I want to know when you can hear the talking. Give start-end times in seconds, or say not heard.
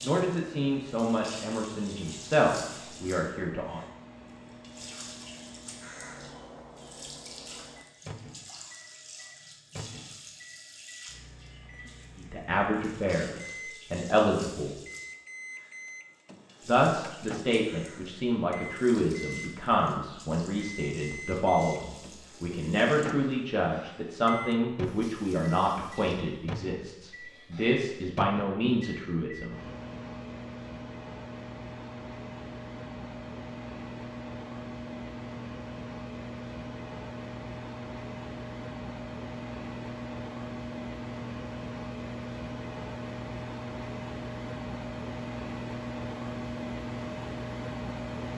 0.0-3.8, 12.2-14.8, 16.6-29.6.